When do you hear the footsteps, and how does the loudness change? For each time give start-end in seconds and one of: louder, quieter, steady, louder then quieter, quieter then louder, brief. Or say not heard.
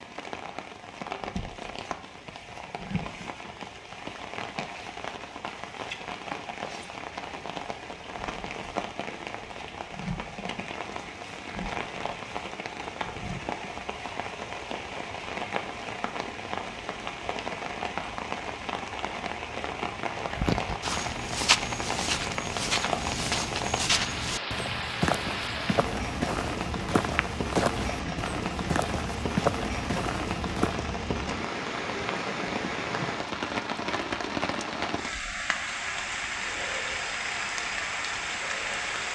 20.3-30.8 steady.